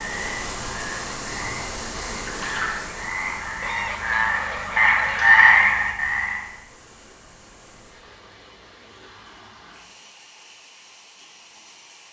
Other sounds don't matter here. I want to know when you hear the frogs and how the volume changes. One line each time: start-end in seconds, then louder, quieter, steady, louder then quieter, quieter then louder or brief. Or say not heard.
0.0-6.4 louder.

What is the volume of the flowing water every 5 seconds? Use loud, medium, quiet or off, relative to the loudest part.
loud, quiet, quiet.